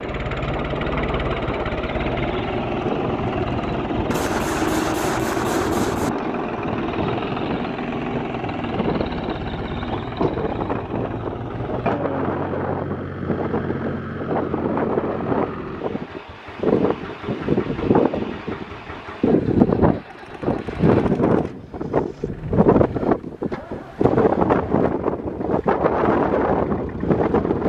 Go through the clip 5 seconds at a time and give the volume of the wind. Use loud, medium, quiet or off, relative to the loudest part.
medium, medium, medium, loud, loud, loud.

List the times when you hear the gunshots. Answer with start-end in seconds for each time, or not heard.
4.1-6.1, 20.1-21.6.